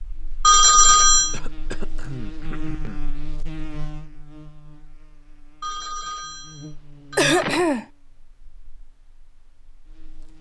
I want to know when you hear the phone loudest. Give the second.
1 s.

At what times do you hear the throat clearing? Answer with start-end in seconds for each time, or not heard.
1.3-3.0, 7.2-7.8.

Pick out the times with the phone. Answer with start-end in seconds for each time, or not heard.
0.4-1.4, 5.6-7.7.